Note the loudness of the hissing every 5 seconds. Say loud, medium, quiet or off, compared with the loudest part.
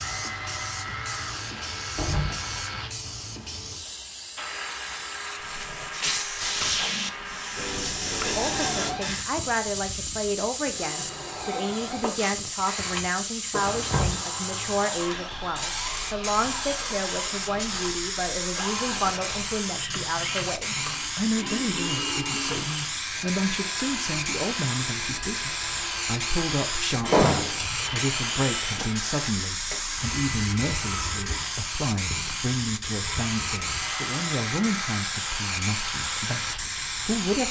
medium, loud, loud, loud, loud, loud, loud, loud.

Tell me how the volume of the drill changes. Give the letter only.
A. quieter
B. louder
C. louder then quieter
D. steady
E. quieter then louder
D.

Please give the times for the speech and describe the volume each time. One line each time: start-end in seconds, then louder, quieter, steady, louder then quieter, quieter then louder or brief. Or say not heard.
8.2-37.4 steady.